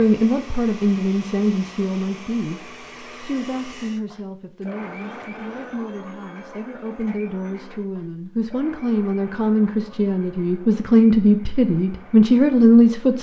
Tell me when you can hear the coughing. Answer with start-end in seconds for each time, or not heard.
not heard.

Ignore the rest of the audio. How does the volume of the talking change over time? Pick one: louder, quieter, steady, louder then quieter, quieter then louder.
quieter then louder.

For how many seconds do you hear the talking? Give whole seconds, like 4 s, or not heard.
13 s.